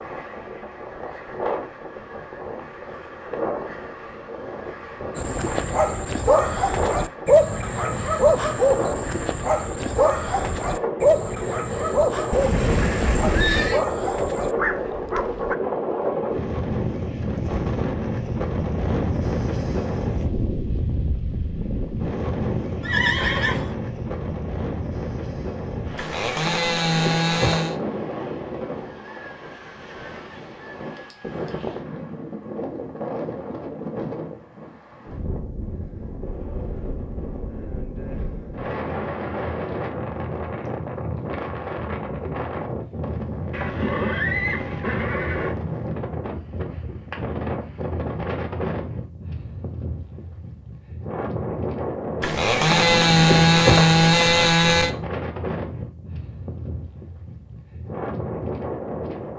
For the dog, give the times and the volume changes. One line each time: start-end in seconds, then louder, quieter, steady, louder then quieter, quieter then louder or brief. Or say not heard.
5.2-15.6 quieter.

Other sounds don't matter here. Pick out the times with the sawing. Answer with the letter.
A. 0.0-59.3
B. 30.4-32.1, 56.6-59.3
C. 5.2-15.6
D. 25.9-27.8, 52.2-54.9
D.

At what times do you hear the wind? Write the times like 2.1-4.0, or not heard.
0.0-59.3.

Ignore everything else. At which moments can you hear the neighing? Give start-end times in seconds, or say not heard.
12.3-13.8, 22.8-23.8, 43.5-45.5.